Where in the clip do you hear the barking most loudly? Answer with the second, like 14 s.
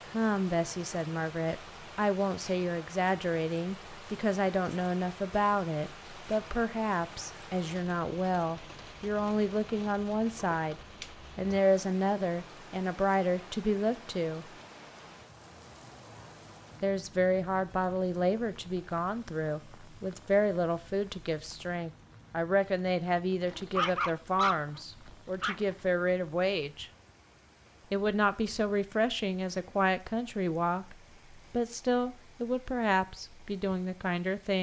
24 s.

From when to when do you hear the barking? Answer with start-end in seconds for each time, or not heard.
23.4-25.8.